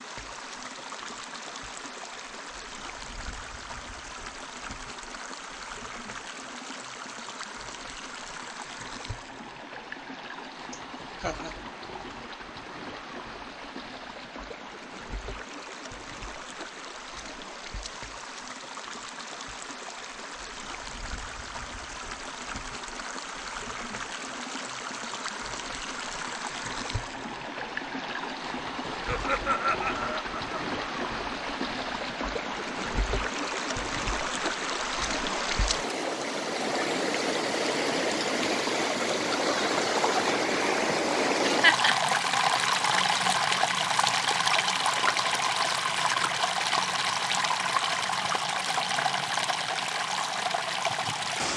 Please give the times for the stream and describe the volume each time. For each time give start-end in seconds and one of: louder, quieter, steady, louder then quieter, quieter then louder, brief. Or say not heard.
0.0-51.5 louder.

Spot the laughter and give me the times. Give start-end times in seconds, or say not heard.
10.7-11.6, 28.9-30.6, 41.5-42.0.